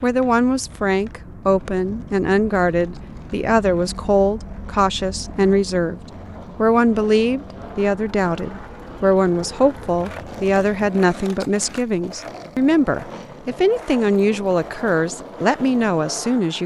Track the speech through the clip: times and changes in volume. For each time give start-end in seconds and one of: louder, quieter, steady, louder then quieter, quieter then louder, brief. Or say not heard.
0.0-6.0 steady
6.5-16.6 steady.